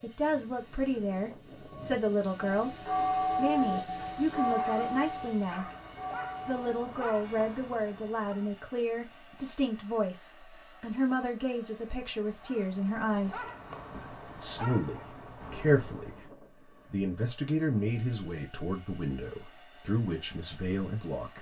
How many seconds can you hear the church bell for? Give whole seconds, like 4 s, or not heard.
6 s.